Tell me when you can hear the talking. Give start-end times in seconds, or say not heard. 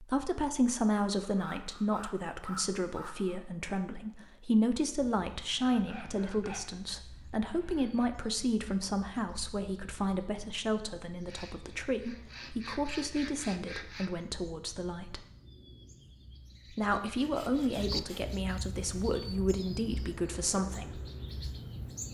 0.0-15.2, 16.7-21.0.